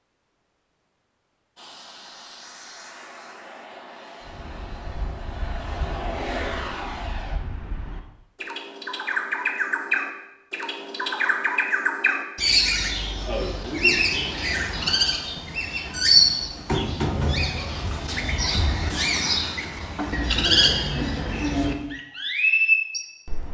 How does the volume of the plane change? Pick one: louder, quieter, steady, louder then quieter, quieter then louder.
louder.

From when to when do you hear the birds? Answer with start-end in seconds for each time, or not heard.
4.2-23.5.